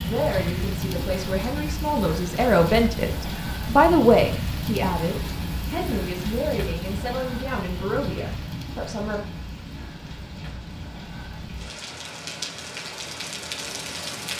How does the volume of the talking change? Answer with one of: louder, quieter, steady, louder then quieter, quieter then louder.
louder then quieter.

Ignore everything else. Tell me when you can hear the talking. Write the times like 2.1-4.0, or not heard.
0.0-9.2.